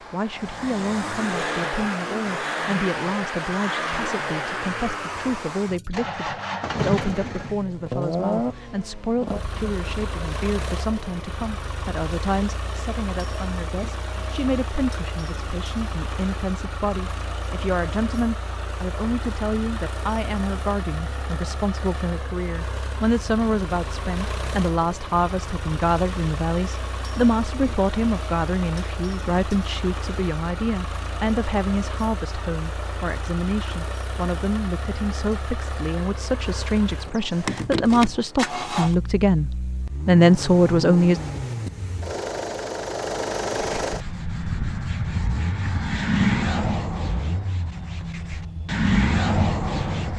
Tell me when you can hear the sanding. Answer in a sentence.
The sanding can be heard from 43.5 to 50.1 s.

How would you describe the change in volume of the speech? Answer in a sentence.
The volume of the speech goes up.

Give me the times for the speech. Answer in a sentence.
The speech can be heard from 0.1 to 41.2 s.